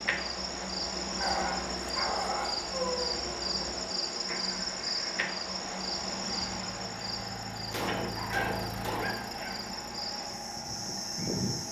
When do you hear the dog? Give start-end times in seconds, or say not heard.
1.2-3.1, 7.8-9.8.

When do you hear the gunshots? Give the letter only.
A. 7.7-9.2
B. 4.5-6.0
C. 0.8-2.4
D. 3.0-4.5
A.